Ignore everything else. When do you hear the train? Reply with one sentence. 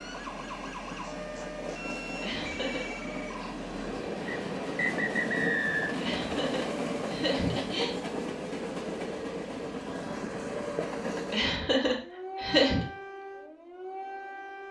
You can hear the train from 0.0 to 11.5 s.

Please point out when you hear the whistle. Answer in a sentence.
You can hear the whistle from 4.2 to 6.0 s.